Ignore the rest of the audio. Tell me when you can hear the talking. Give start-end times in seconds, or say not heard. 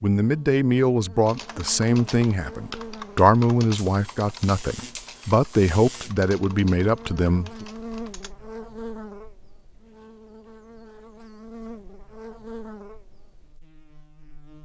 0.0-7.7.